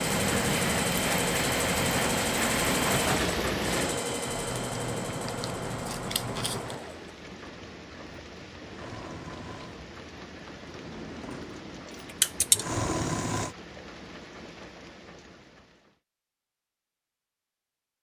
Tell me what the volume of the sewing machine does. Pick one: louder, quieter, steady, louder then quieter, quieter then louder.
quieter then louder.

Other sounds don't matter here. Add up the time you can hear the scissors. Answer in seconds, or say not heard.
3 s.